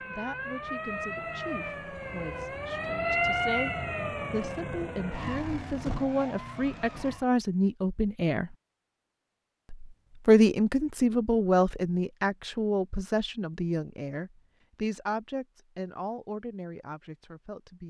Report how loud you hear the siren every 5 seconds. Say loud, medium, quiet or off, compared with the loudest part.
loud, medium, off, off.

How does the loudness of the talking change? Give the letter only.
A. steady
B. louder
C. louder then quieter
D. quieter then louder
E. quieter
C.